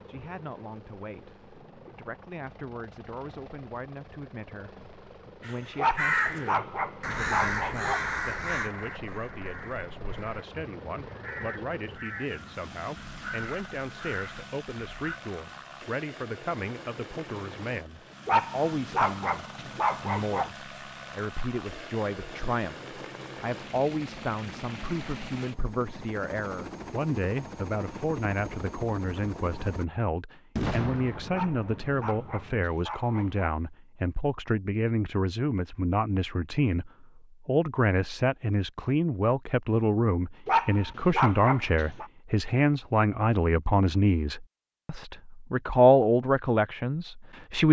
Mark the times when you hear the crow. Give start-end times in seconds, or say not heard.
5.4-15.2.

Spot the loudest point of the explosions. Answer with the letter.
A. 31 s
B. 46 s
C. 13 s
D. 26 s
A.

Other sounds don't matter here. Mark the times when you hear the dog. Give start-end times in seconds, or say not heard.
5.8-8.1, 18.2-20.5, 31.3-33.5, 40.5-42.0.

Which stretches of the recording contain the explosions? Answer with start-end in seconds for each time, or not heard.
30.6-32.7.